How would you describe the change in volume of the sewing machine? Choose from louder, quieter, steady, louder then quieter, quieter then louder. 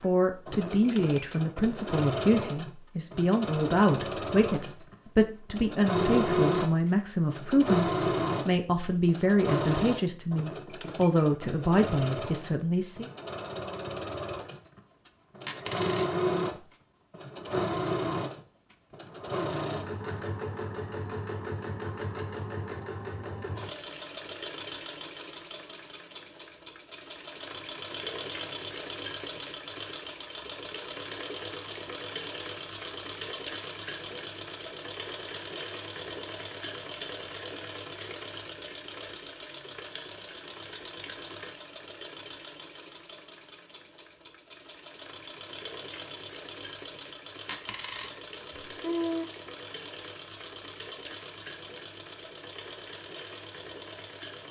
quieter.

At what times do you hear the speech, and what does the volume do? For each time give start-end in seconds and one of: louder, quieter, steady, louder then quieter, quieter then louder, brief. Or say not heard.
0.0-13.1 steady.